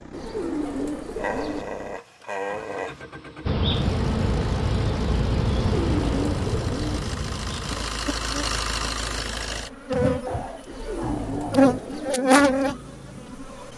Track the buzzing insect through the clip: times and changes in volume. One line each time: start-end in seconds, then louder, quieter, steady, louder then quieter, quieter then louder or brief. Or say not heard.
3.5-13.7 quieter then louder.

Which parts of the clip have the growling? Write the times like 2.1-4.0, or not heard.
1.1-3.0, 10.2-11.9.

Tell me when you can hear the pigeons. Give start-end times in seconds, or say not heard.
0.1-1.6, 5.7-7.0, 10.7-12.2.